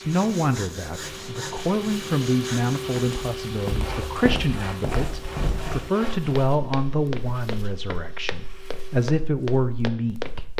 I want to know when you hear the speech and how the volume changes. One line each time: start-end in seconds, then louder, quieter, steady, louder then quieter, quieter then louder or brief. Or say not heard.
0.0-10.5 steady.